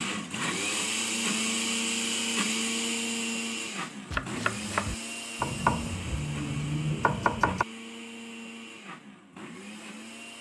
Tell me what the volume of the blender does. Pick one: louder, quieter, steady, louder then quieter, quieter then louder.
quieter.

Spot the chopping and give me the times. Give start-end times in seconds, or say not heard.
4.0-7.7.